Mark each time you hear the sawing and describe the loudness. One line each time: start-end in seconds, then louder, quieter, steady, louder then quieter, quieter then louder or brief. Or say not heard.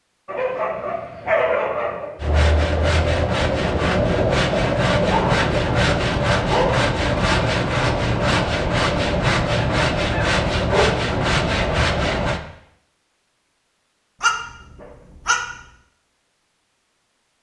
2.2-12.4 steady.